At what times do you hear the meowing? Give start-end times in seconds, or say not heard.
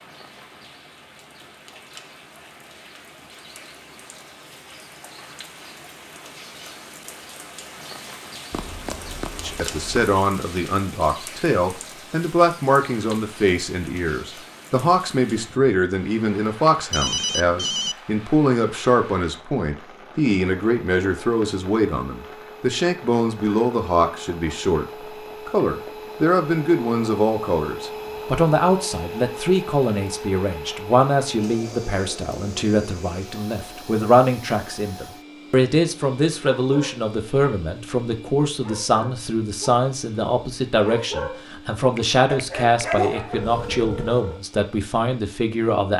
not heard.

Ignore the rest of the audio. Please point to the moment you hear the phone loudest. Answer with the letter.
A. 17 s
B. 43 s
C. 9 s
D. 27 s
A.